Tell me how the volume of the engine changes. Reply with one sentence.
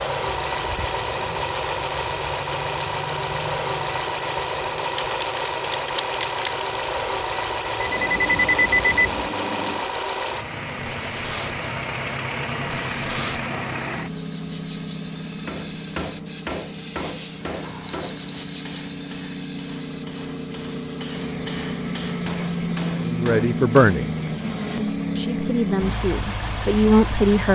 The loudness of the engine goes down, then up.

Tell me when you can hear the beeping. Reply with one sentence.
The beeping can be heard from 7.8 to 9.2 s and from 17.6 to 18.5 s.